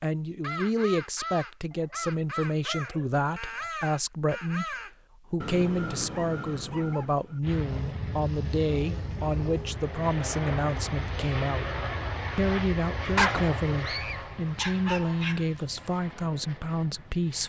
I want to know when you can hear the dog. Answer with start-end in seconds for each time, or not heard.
1.7-3.7, 6.1-7.0, 13.2-15.4.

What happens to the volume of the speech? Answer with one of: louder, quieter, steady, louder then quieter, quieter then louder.
steady.